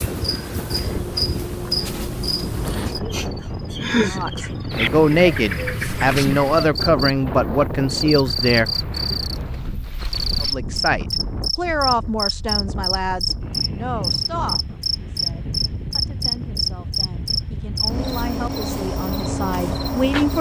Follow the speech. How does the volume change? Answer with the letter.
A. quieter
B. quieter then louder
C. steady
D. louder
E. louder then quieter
B.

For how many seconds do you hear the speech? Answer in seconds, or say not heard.
15 s.